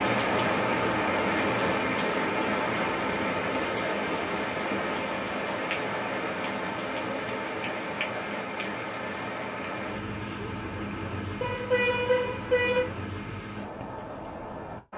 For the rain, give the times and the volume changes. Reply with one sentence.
You can hear the rain from 0.0 to 14.9 s, getting quieter.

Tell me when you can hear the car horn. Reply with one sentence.
You can hear the car horn from 11.4 to 12.8 s.